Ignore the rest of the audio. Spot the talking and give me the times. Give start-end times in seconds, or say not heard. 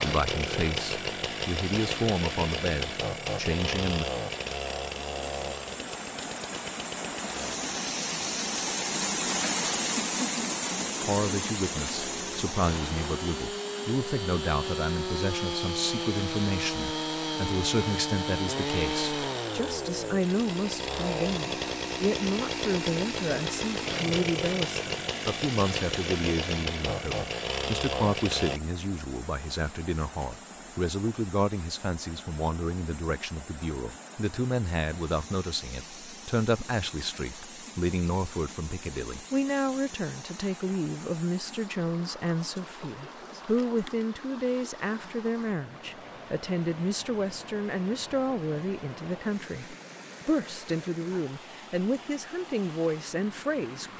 0.0-4.0, 11.1-53.9.